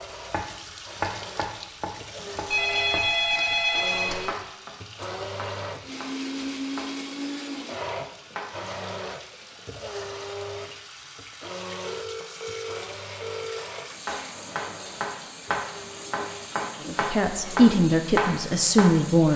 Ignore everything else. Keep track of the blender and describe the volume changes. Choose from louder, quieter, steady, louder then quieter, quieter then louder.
louder then quieter.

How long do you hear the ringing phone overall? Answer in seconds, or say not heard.
4 s.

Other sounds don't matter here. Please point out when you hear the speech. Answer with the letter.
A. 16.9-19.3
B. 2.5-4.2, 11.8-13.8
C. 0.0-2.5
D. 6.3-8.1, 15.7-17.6
A.